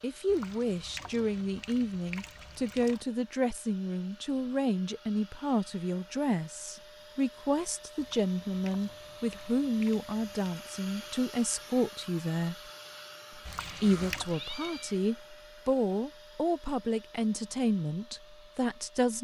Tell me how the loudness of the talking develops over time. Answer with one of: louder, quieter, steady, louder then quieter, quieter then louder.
steady.